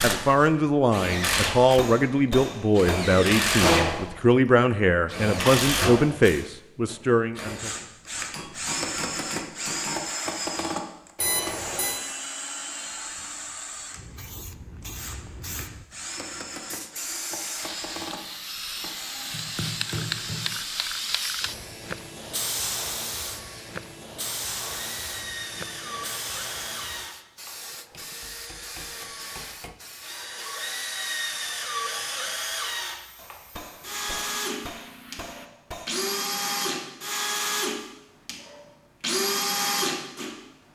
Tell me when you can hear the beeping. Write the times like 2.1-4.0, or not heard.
11.2-12.0.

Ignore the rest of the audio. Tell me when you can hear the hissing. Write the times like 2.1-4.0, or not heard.
13.9-35.5.